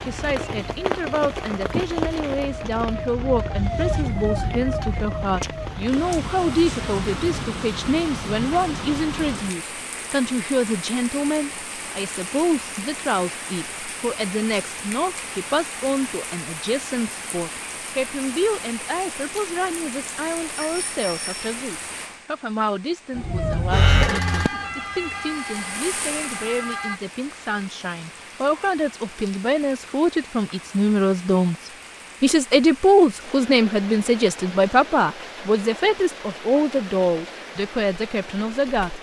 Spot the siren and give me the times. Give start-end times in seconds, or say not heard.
0.0-7.4, 23.1-27.0.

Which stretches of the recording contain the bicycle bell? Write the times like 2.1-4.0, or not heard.
20.6-21.5.